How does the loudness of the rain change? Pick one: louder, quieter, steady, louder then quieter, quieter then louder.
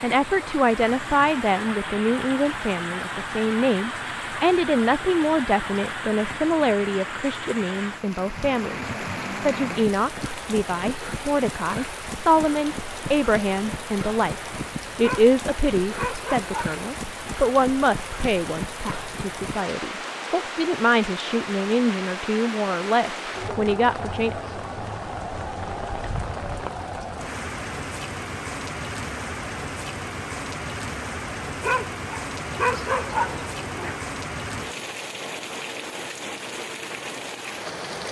steady.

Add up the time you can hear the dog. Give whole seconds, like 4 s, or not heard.
4 s.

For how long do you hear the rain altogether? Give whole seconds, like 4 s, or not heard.
38 s.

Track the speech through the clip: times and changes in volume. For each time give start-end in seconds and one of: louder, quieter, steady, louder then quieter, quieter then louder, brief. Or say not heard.
0.0-24.6 steady.